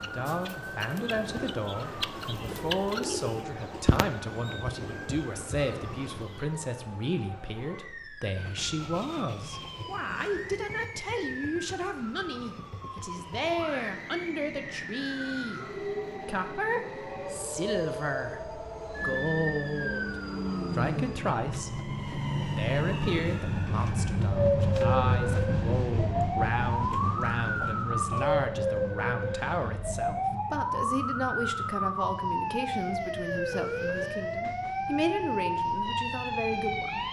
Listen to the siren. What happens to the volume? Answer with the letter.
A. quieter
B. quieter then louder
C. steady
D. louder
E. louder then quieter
D.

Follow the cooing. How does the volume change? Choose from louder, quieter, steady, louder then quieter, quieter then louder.
louder then quieter.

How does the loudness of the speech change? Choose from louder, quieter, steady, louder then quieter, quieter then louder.
steady.